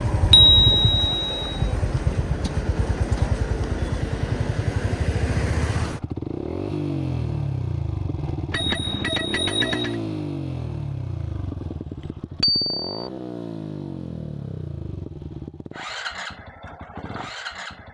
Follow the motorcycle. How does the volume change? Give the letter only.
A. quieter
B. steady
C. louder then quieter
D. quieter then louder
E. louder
A.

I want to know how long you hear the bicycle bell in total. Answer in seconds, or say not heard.
3 s.